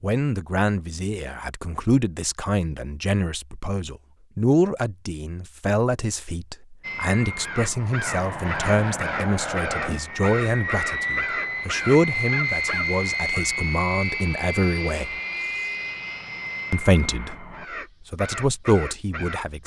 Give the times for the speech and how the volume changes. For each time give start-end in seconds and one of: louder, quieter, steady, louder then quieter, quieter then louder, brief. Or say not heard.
0.0-15.2 steady
16.7-19.6 brief.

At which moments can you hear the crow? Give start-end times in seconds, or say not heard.
7.4-13.4, 17.5-19.6.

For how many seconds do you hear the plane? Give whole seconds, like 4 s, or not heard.
11 s.